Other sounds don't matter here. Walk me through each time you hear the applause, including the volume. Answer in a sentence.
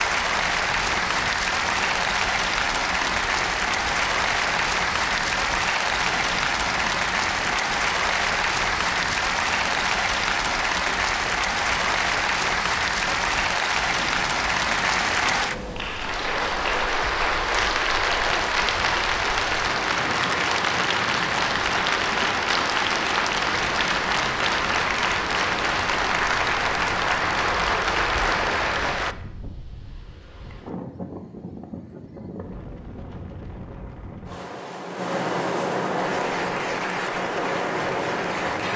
The applause can be heard from 0.0 to 29.1 s, at a steady volume; and briefly from 36.0 to 38.7 s.